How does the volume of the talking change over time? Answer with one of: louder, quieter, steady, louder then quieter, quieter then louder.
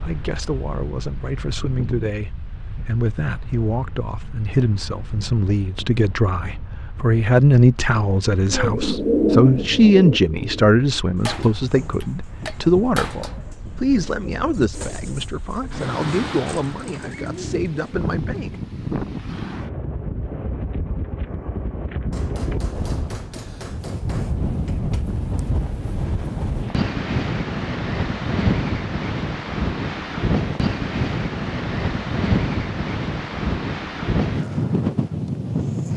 louder then quieter.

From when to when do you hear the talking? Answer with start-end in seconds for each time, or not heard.
0.0-18.6.